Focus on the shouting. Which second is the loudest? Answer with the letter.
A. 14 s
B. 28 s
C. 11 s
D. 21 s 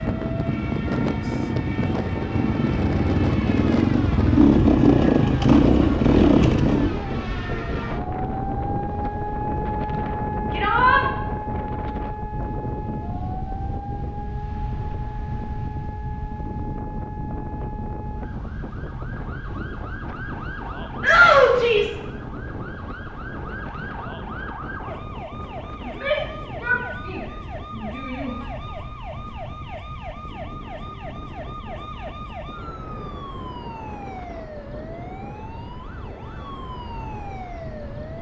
D.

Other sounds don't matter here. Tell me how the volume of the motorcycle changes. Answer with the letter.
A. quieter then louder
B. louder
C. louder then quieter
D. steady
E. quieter
B.